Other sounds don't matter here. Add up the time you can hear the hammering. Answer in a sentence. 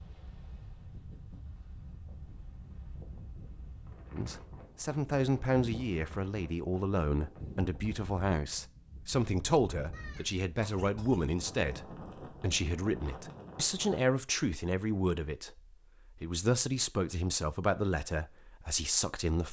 You can't hear the hammering here.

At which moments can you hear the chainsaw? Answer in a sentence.
The chainsaw can't be heard in this clip.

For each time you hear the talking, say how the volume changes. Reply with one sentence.
You can hear the talking from 4.1 to 19.4 s, at a steady volume.